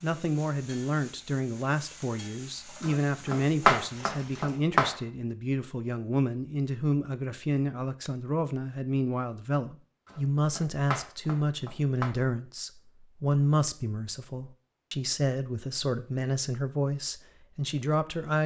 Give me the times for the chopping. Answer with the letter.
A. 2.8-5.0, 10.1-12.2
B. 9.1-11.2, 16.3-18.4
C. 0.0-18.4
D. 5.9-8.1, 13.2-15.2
A.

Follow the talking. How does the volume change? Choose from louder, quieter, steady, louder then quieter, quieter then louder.
steady.